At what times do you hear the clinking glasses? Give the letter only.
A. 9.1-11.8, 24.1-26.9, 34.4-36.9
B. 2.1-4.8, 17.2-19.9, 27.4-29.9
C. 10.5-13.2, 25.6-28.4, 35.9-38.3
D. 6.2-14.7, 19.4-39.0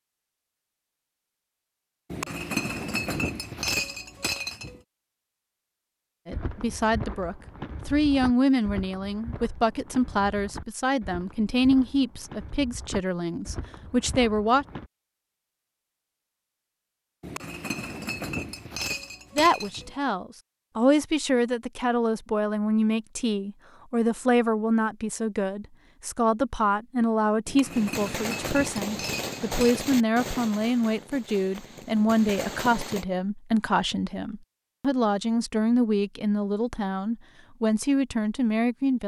B.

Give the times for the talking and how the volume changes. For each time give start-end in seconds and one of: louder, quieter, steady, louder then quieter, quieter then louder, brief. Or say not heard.
6.2-14.7 steady
19.4-39.0 steady.